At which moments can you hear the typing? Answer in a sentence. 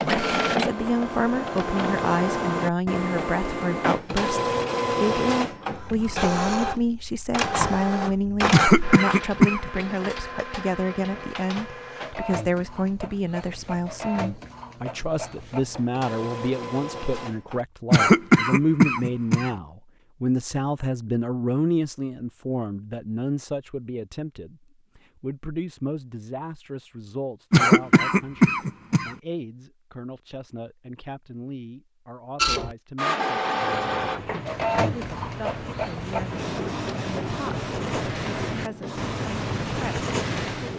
The typing can't be heard in this clip.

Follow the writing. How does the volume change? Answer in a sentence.
The loudness of the writing goes up.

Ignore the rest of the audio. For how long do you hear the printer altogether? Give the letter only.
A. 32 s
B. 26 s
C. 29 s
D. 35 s
B.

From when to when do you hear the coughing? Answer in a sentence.
You can hear the coughing from 8.5 to 9.7 s, from 17.9 to 19.5 s and from 27.5 to 29.1 s.